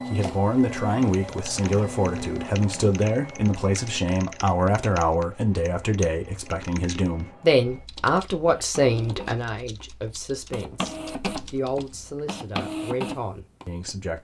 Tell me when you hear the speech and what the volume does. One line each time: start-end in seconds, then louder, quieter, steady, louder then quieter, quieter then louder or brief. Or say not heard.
0.1-14.1 quieter.